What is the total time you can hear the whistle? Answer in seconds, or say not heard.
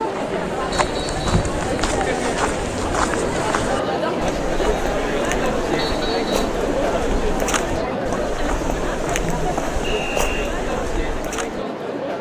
2 s.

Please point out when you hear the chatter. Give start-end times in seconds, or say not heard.
0.0-12.1.